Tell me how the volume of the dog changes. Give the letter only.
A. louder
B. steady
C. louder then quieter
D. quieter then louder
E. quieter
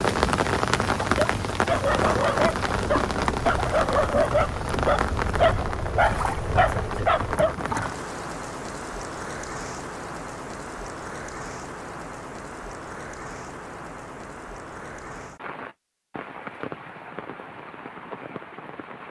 B.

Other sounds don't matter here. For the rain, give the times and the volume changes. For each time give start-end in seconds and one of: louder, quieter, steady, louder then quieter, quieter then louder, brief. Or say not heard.
0.0-19.0 quieter.